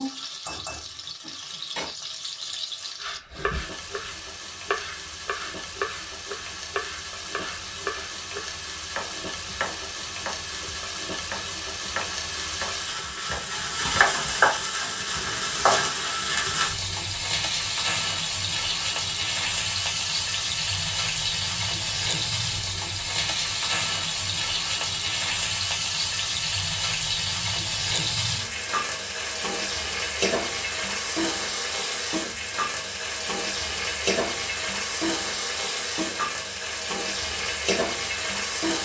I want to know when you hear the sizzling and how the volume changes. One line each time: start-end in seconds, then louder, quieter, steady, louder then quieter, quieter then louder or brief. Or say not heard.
0.0-38.8 louder.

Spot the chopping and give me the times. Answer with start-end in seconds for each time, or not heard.
3.0-14.2.